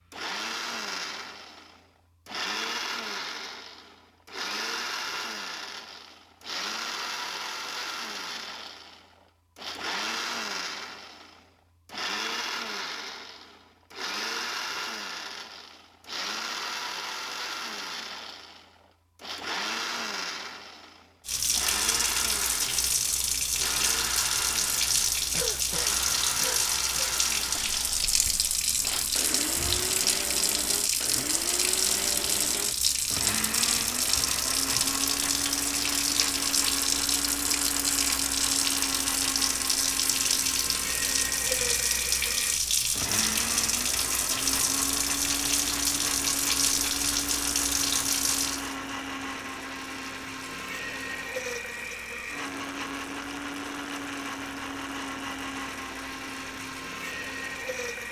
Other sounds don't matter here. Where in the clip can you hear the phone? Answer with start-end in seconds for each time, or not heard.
not heard.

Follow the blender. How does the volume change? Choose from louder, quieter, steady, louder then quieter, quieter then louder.
steady.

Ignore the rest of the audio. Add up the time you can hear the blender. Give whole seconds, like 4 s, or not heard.
58 s.